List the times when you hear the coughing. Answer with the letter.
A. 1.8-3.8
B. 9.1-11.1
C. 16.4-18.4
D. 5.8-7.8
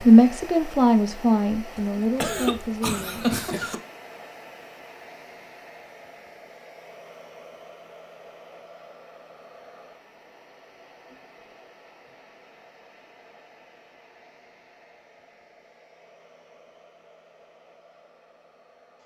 A.